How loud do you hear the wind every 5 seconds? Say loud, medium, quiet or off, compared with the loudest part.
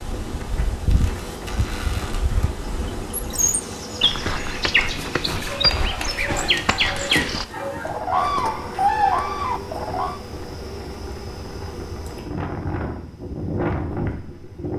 medium, medium, loud.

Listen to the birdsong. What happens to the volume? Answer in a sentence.
The volume of the birdsong goes up.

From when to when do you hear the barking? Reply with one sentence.
You can hear the barking from 5.4 to 8.0 s.